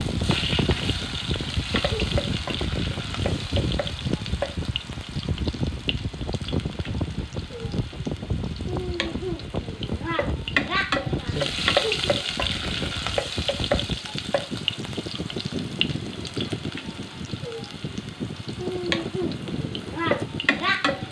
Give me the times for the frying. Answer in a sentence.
The frying can be heard from 0.0 to 21.0 s.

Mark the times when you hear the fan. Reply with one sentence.
You can hear the fan from 0.0 to 21.0 s.